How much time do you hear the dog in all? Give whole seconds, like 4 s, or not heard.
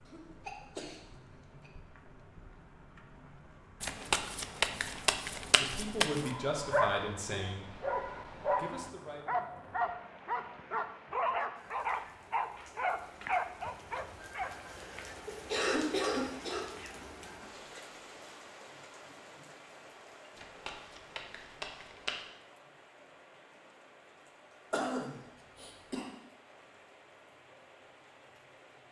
8 s.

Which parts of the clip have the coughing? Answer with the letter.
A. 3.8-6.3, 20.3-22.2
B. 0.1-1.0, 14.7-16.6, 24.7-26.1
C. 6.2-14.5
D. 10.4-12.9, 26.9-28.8
B.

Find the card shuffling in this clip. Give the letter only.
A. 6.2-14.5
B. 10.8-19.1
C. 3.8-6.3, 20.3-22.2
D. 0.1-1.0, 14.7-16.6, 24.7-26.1
C.